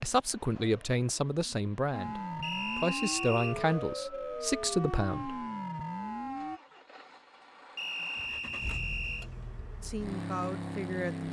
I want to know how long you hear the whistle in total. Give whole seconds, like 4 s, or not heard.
3 s.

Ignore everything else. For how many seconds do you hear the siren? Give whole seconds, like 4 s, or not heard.
5 s.